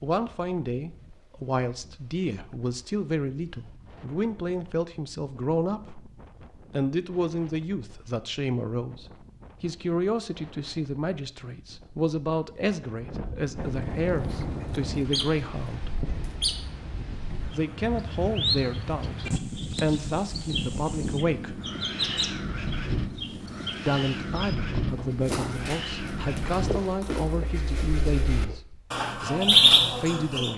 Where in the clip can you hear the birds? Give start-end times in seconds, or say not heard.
14.2-30.5.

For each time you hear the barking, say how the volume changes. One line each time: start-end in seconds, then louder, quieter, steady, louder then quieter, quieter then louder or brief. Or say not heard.
not heard.